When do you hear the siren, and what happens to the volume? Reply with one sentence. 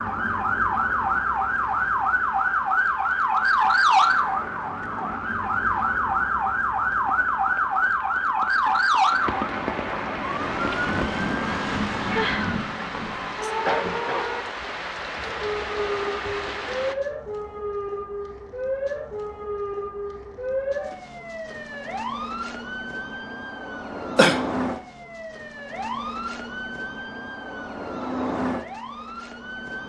The siren can be heard from 0.0 to 29.8 s, getting quieter.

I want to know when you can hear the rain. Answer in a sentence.
You can hear the rain from 0.0 to 16.9 s.